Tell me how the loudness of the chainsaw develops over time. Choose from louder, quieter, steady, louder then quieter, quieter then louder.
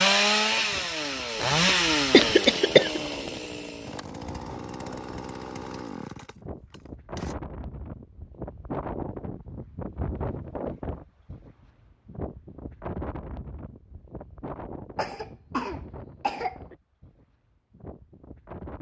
quieter.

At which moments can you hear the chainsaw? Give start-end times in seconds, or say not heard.
0.0-7.3.